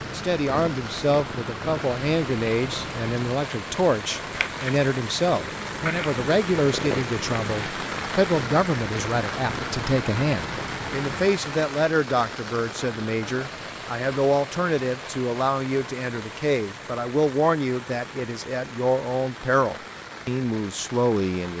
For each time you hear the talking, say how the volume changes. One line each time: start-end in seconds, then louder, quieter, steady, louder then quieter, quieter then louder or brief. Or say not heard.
0.1-21.5 steady.